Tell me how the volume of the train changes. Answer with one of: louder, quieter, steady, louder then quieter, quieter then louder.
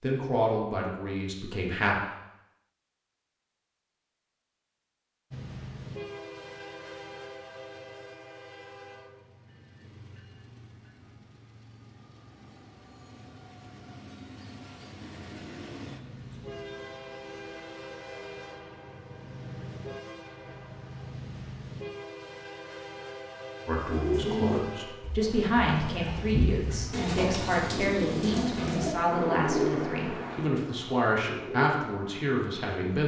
quieter then louder.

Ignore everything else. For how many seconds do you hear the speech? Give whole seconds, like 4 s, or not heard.
11 s.